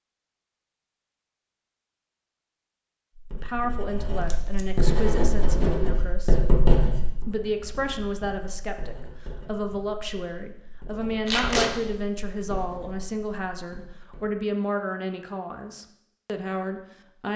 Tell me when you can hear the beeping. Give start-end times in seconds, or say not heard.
not heard.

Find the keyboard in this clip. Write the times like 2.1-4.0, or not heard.
not heard.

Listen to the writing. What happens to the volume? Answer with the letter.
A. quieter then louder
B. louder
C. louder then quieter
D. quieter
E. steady
D.